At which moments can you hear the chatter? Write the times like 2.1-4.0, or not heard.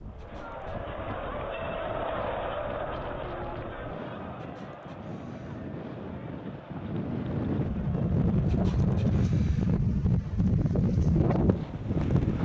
0.0-9.3.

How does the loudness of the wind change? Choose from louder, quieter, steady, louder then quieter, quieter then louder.
louder.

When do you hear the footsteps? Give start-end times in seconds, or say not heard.
not heard.